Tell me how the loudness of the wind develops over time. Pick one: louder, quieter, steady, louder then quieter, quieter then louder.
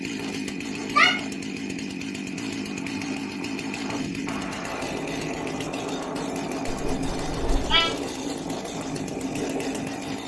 louder.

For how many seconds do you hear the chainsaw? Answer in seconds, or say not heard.
10 s.